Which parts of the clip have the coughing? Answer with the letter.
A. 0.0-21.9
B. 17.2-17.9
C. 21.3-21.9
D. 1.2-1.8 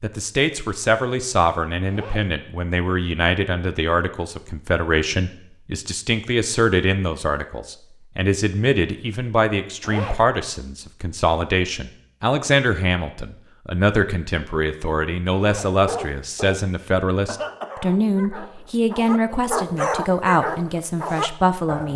B.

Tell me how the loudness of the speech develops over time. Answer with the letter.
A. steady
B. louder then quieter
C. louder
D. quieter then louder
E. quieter
A.